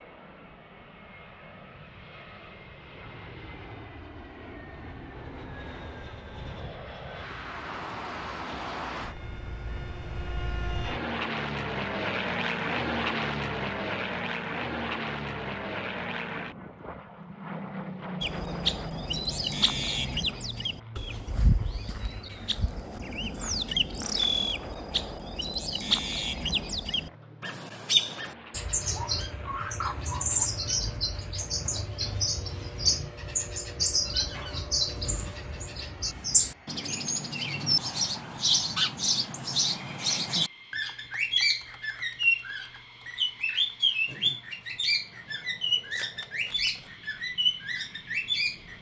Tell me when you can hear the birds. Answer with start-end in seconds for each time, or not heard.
18.2-48.7.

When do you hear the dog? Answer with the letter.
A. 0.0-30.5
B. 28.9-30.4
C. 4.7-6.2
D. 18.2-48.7
B.